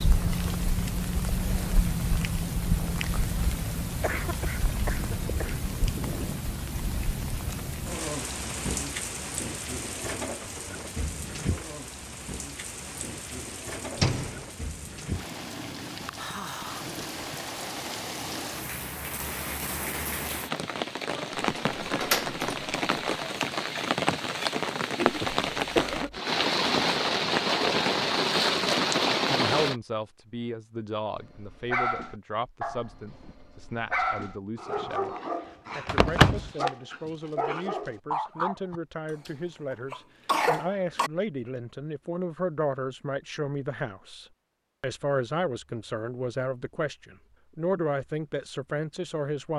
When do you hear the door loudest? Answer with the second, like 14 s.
36 s.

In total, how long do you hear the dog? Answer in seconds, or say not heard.
8 s.